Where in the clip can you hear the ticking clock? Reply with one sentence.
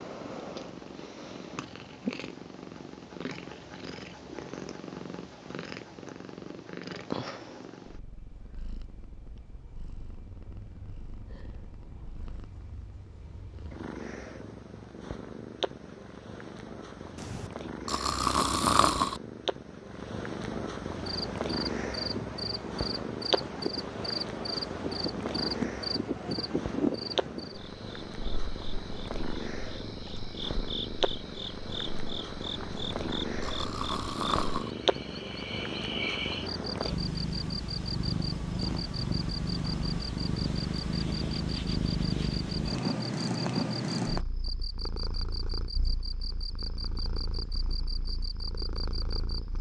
You can't hear the ticking clock here.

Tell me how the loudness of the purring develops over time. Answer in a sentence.
The volume of the purring goes up.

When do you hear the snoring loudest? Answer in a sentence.
The volume of the snoring peaks at 19 seconds.